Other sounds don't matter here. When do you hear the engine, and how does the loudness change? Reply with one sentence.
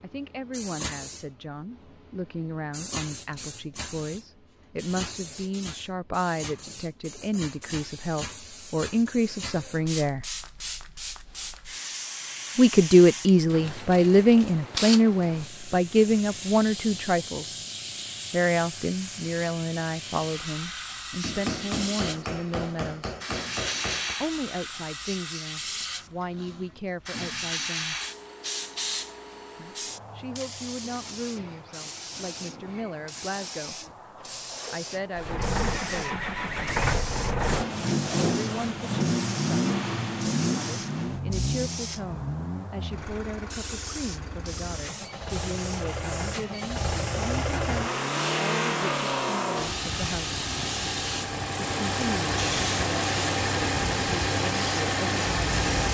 The engine can be heard from 35.1 to 55.8 s, getting quieter then louder.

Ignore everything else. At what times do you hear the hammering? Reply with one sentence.
The hammering can be heard from 21.2 to 24.1 s.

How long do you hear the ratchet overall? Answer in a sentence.
You can't hear the ratchet here.